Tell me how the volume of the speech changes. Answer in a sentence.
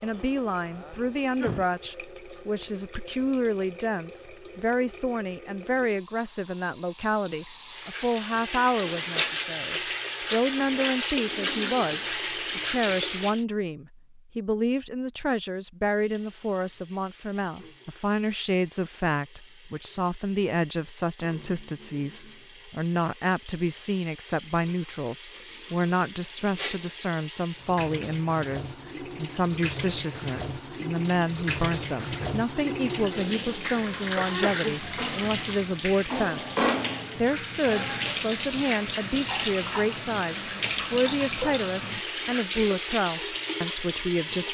The loudness of the speech stays about the same.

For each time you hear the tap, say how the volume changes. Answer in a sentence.
The tap can be heard from 0.0 to 13.4 s, getting louder; and from 15.9 to 44.5 s, getting louder.